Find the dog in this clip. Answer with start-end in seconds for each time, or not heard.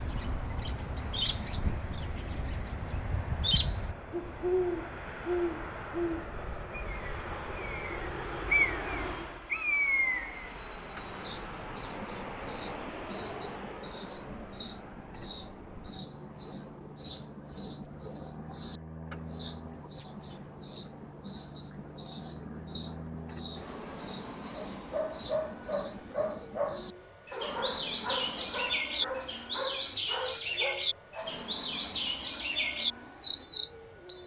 24.8-31.5.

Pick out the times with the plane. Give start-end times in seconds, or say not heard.
0.0-34.2.